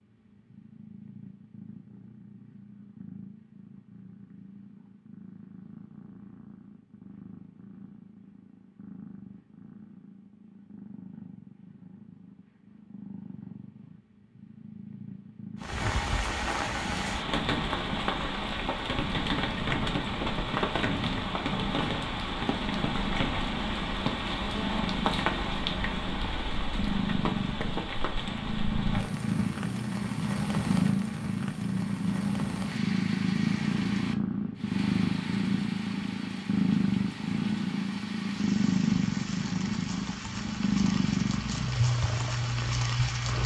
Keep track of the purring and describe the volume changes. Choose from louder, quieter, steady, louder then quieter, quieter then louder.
louder.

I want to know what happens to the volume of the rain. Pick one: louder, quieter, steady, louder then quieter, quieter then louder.
quieter.